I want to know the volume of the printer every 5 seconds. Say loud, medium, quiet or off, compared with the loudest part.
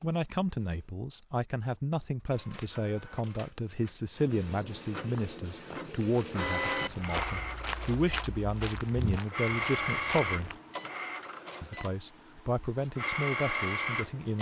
quiet, loud, loud.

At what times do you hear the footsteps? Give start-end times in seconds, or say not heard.
5.1-10.6.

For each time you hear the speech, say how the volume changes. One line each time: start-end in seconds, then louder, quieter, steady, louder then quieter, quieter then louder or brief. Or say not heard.
0.0-10.5 steady
11.6-14.3 brief.